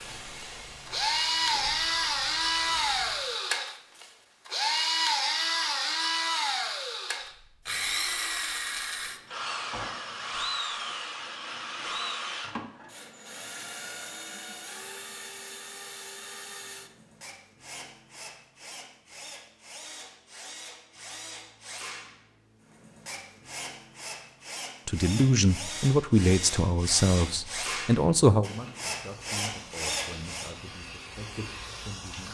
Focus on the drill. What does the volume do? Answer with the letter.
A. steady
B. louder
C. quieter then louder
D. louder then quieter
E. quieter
C.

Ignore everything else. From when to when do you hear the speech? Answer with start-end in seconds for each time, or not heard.
24.9-32.2.